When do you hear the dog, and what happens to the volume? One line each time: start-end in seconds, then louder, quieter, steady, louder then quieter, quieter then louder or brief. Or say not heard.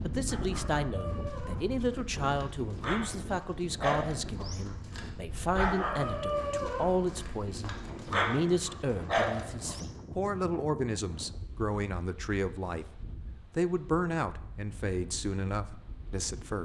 0.2-10.0 louder.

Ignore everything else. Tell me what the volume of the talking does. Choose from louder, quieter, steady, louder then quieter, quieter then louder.
steady.